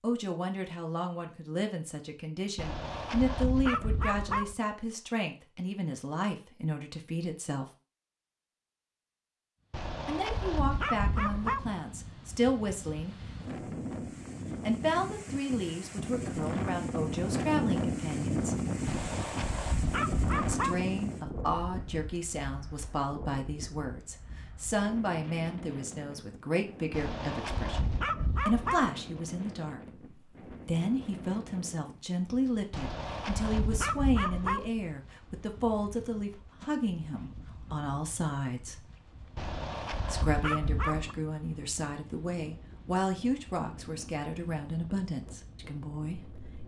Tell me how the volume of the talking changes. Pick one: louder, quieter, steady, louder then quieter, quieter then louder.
steady.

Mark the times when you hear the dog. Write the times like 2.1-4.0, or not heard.
2.5-4.5, 9.7-11.7, 18.9-20.9, 26.9-28.9, 32.7-34.7, 39.4-41.1.